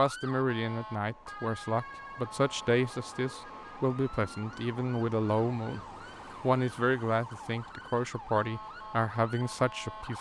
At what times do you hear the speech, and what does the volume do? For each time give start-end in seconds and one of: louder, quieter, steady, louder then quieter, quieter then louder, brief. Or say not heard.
0.0-10.1 steady.